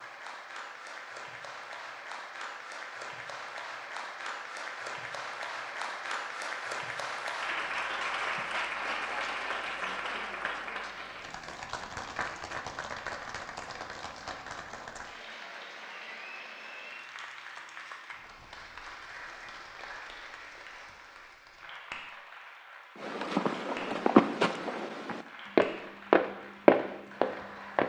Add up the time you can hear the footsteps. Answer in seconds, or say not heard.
5 s.